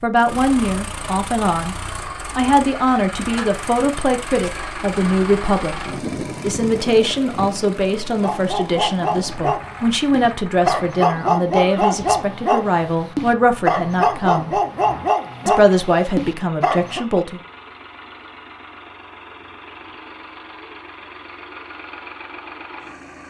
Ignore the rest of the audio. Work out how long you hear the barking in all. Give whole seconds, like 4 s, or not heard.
9 s.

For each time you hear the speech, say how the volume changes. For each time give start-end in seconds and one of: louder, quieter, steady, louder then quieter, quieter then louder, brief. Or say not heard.
0.0-1.8 brief
2.4-14.6 steady
15.4-17.4 brief.